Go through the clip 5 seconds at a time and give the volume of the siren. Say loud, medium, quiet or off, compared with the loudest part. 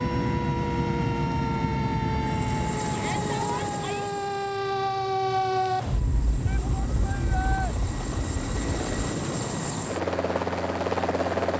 loud, loud, off.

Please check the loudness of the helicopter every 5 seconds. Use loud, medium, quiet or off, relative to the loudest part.
loud, medium, loud.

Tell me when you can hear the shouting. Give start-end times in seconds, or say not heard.
2.9-4.1, 6.5-7.8.